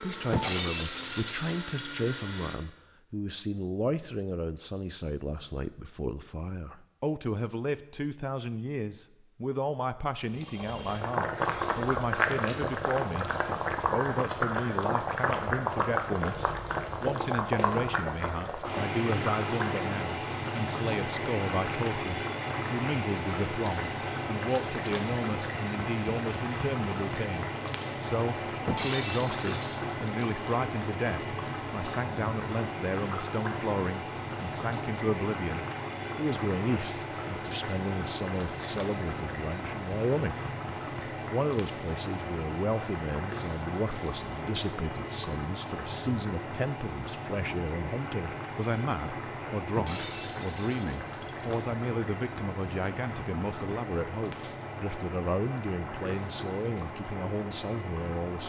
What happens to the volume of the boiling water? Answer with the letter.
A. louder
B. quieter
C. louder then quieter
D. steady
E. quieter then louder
B.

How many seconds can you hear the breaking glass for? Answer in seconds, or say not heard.
5 s.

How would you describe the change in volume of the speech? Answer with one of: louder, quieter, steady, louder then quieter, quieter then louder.
steady.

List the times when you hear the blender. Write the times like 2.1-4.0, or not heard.
0.0-2.5.